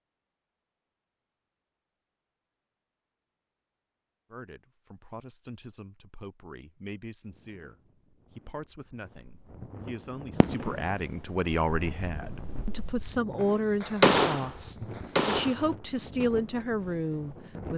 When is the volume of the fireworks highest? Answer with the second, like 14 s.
14 s.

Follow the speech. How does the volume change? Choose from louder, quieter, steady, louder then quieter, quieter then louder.
louder.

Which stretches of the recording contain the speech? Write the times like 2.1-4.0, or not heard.
4.3-17.7.